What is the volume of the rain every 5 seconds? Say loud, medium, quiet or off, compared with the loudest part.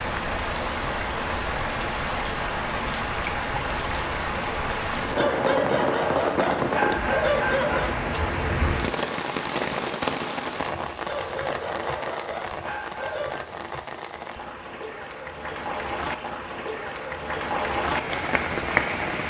loud, loud, medium, loud.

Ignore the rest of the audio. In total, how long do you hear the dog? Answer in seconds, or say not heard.
5 s.